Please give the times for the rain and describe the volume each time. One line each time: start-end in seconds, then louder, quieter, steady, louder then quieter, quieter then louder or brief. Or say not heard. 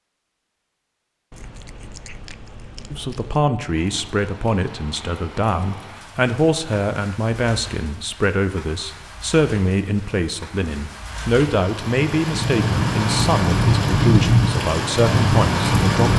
3.6-16.1 louder.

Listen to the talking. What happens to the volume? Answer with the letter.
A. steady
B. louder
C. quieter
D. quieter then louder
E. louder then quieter
A.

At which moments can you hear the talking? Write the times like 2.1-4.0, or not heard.
2.9-16.1.